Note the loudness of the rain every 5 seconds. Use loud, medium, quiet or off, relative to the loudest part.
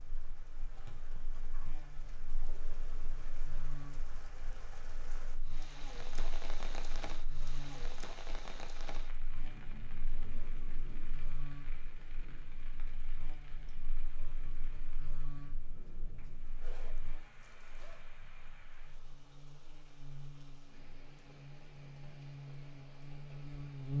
medium, loud, medium, medium, medium.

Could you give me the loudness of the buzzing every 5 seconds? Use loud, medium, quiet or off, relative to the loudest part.
quiet, quiet, quiet, quiet, loud.